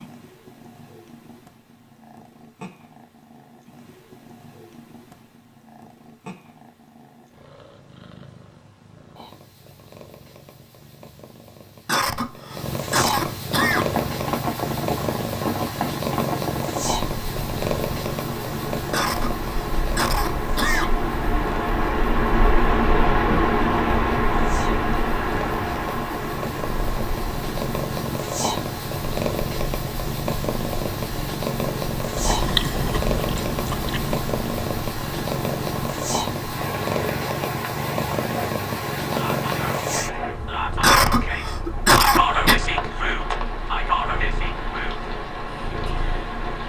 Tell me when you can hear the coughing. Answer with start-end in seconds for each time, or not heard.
11.8-13.9, 18.9-20.9, 40.8-42.5.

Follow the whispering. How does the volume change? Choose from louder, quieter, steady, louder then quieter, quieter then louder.
louder then quieter.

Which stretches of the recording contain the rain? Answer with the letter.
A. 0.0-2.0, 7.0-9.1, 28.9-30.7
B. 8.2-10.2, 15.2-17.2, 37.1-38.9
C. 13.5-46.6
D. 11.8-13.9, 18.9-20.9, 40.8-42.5
C.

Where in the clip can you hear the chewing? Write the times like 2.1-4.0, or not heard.
32.1-34.2.